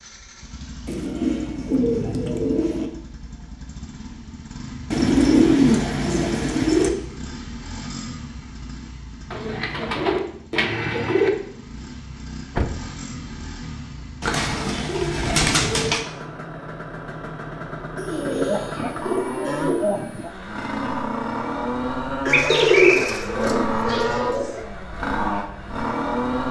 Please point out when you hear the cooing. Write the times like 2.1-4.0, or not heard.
0.8-2.9, 4.9-6.9, 9.3-11.3, 14.2-16.1, 17.9-20.3, 22.2-24.6.